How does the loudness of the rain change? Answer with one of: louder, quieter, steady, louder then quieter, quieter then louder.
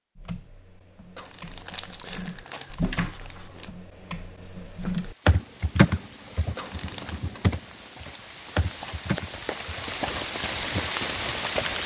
louder.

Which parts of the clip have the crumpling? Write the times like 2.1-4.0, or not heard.
1.1-3.7, 6.5-7.2.